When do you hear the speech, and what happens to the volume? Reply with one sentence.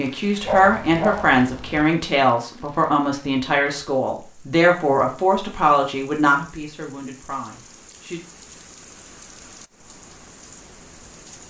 You can hear the speech from 0.0 to 8.2 s, getting quieter.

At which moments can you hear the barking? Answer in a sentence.
The barking can be heard from 0.5 to 1.9 s.